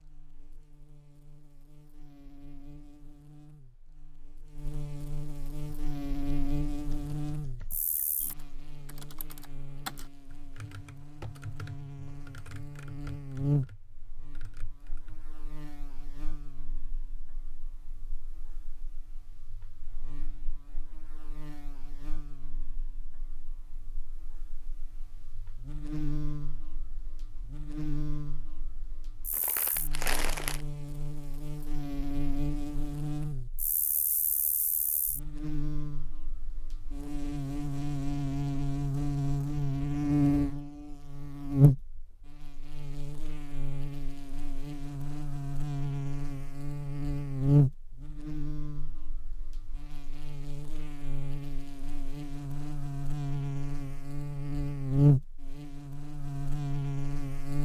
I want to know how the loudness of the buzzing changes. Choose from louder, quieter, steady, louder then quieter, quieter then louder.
louder.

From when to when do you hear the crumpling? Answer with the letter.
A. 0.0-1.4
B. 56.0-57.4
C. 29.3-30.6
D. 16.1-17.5
C.